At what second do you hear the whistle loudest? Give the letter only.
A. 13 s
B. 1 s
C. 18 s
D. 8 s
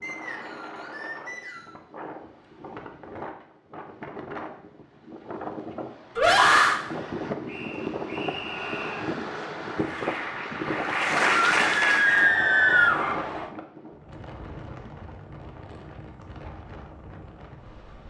A.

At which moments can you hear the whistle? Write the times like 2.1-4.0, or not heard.
0.0-1.8, 7.5-9.1, 12.1-13.5.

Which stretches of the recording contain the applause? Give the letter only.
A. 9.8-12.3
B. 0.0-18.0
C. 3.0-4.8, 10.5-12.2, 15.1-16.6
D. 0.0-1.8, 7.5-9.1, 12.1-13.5
A.